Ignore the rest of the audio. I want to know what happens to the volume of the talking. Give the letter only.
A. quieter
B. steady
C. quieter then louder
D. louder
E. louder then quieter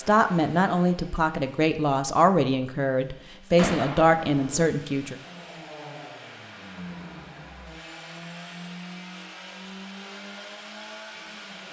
B.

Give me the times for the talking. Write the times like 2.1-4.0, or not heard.
0.0-5.2.